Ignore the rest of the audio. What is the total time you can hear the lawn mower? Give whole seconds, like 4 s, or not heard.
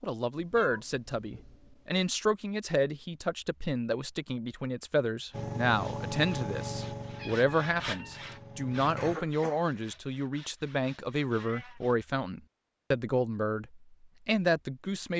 4 s.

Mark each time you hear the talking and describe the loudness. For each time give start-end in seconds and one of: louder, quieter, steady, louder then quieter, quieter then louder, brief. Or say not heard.
0.0-15.1 steady.